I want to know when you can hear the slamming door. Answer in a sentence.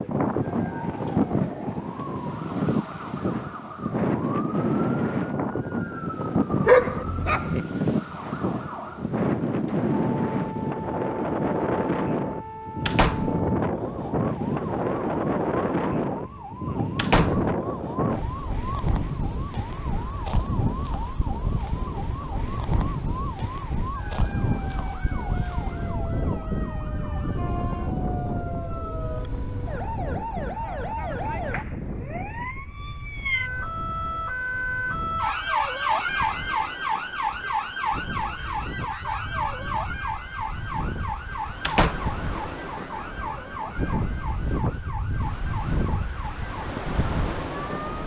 You can hear the slamming door from 12.8 to 13.4 s, from 16.9 to 17.5 s and from 41.6 to 42.1 s.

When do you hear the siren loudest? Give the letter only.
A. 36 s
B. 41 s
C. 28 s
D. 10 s
A.